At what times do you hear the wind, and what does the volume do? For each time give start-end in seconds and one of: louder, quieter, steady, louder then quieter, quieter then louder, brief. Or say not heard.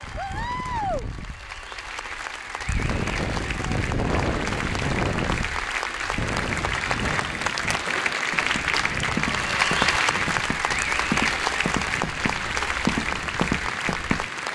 0.0-14.5 louder then quieter.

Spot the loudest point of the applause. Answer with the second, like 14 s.
10 s.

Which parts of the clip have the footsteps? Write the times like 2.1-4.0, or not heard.
7.4-14.2.